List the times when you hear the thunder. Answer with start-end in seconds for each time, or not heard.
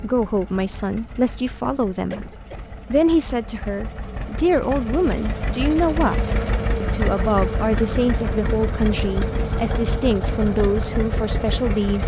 not heard.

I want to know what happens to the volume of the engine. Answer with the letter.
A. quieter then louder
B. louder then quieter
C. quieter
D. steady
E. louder
E.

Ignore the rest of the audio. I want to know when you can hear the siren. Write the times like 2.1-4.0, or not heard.
not heard.